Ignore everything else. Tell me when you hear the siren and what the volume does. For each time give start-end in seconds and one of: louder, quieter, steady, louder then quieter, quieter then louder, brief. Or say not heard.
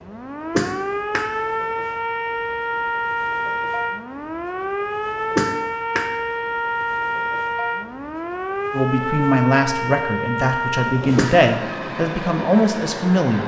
0.0-13.2 steady.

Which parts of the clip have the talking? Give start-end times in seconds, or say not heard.
8.7-13.4.